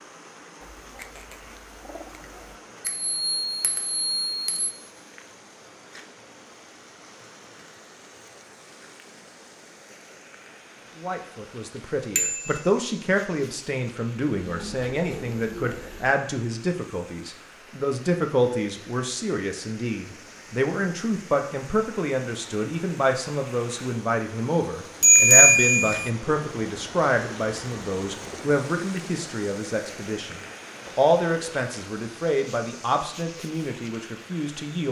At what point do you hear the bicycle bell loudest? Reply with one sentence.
The volume of the bicycle bell peaks at 25 seconds.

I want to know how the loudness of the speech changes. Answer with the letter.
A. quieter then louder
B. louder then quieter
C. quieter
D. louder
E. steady
E.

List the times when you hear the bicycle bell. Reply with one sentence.
You can hear the bicycle bell from 2.9 to 4.7 s, from 12.2 to 12.6 s and from 25.0 to 26.1 s.